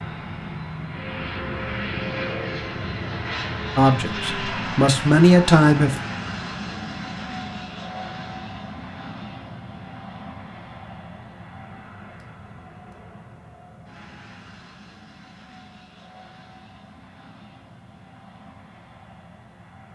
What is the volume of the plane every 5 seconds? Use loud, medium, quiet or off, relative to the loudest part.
loud, loud, quiet, quiet.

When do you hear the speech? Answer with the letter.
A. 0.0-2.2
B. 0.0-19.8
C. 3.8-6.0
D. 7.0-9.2
C.